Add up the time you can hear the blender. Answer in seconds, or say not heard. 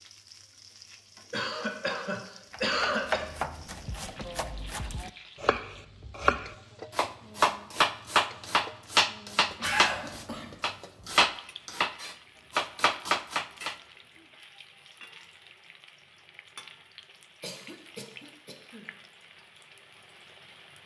not heard.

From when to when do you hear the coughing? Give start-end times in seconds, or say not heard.
1.3-3.3, 9.6-10.6, 17.4-18.9.